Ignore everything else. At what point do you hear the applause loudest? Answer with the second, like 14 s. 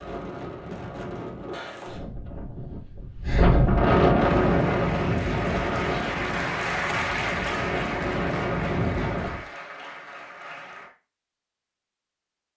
7 s.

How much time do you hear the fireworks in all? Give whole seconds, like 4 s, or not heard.
not heard.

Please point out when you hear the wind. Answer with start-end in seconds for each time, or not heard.
0.0-9.4.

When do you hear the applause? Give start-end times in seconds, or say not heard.
4.2-10.9.